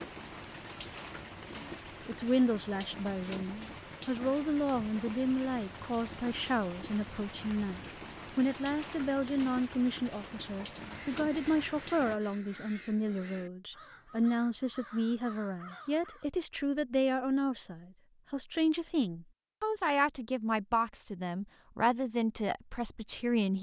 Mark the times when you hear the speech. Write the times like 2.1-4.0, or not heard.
2.0-23.5.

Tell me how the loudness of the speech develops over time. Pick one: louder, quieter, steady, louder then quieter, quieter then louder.
steady.